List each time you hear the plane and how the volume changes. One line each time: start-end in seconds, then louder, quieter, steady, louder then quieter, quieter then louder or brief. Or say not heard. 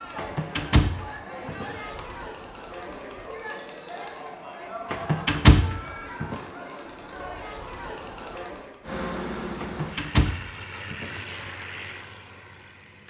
8.8-13.0 quieter.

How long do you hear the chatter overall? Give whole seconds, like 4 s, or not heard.
9 s.